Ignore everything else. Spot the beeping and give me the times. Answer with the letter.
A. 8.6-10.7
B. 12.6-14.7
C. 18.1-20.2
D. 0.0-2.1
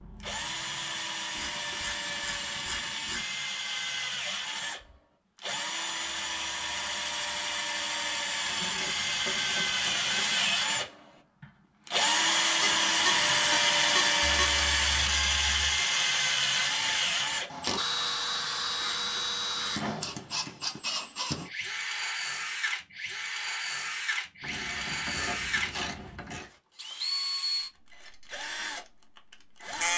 B.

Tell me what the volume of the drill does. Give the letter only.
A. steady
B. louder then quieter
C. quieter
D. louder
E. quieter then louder
B.